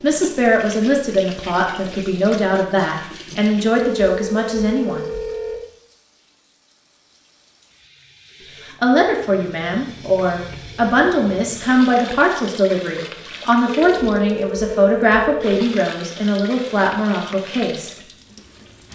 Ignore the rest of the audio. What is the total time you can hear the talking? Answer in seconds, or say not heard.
14 s.